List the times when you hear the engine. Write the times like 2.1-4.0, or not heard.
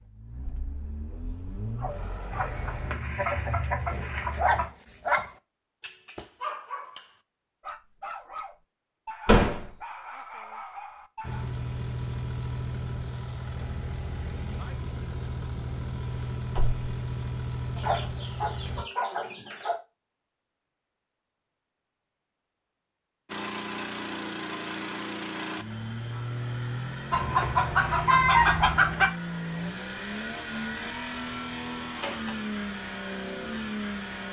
0.0-3.0, 11.2-18.9, 23.2-34.2.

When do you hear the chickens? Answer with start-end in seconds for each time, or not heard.
2.3-4.7, 17.8-19.8, 27.1-29.1.